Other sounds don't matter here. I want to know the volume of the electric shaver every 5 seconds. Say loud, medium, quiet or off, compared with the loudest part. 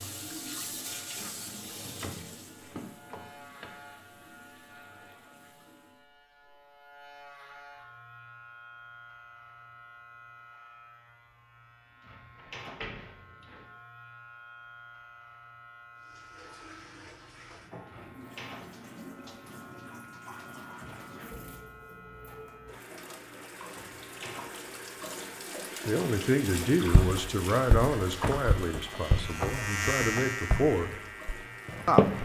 quiet, quiet, quiet, quiet, quiet, loud, loud.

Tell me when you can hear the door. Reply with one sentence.
You can hear the door from 1.8 to 3.7 s, from 12.3 to 13.7 s and from 28.2 to 30.2 s.